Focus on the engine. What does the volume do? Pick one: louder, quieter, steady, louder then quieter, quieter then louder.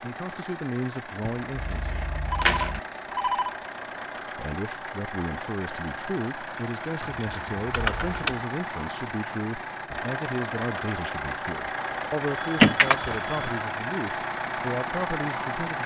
louder.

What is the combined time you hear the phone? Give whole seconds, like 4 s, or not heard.
4 s.